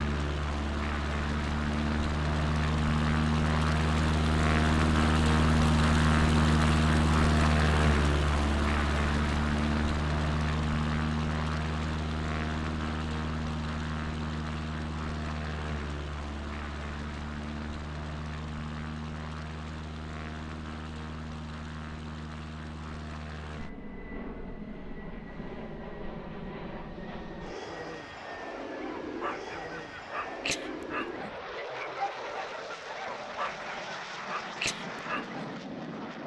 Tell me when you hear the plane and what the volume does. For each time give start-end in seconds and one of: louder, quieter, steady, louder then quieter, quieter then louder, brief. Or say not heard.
0.0-36.2 quieter.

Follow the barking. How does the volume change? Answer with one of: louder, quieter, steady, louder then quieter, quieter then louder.
steady.